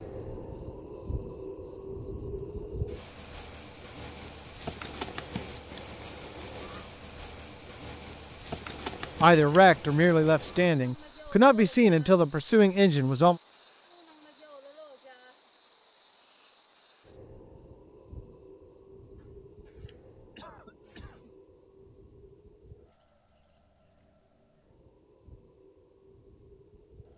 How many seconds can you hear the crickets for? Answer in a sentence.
The crickets can be heard for 27 seconds in total.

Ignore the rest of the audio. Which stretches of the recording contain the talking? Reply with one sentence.
The talking can be heard from 9.2 to 13.4 s.